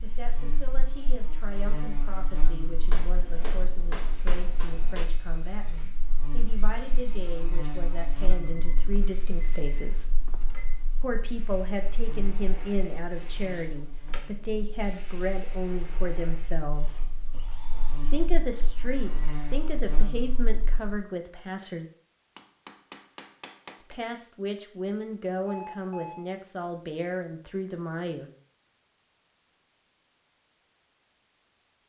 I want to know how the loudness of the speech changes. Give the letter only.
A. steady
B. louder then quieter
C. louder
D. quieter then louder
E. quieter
C.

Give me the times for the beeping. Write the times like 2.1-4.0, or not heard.
8.2-10.8, 25.4-26.2.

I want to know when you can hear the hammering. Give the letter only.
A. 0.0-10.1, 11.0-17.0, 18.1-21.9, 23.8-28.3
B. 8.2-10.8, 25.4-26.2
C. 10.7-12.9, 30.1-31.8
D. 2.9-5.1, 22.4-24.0
D.